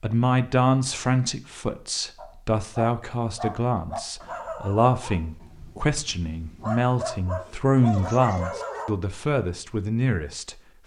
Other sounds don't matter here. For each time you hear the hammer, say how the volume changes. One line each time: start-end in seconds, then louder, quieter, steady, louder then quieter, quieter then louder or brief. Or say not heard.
not heard.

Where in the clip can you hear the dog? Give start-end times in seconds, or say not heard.
2.1-8.9.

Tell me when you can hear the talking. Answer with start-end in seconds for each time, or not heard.
0.0-10.6.